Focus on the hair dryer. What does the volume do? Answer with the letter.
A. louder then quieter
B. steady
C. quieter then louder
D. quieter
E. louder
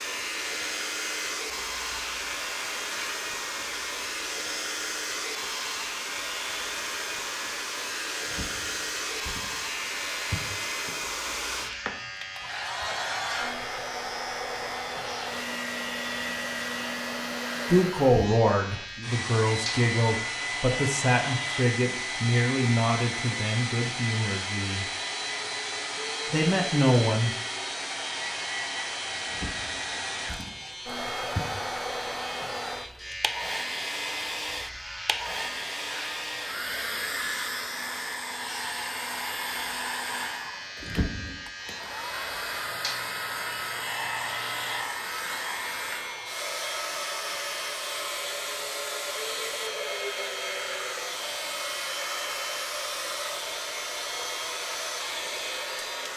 B.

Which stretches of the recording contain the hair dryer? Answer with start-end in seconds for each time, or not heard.
0.0-56.1.